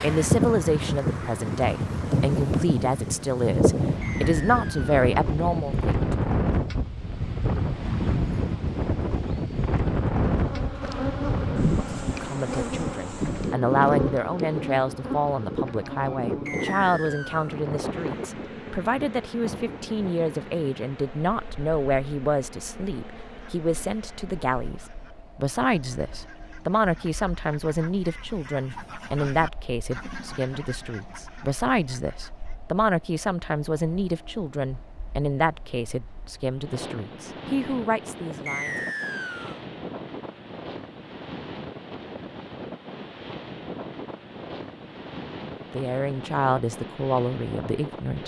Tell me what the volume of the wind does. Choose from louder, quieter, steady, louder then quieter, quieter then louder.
quieter then louder.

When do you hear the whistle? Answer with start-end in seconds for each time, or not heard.
4.0-5.0, 16.4-17.6, 38.5-39.5.